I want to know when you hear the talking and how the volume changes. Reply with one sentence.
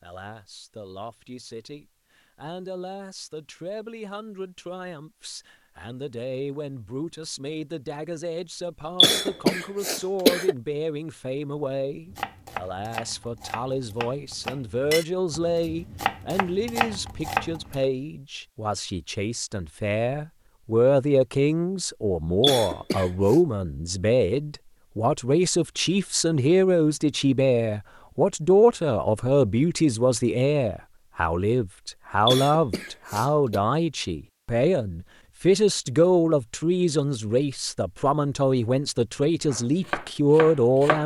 The talking can be heard from 0.0 to 41.0 s, getting louder.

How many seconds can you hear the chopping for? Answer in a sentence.
You can hear the chopping for 7 seconds altogether.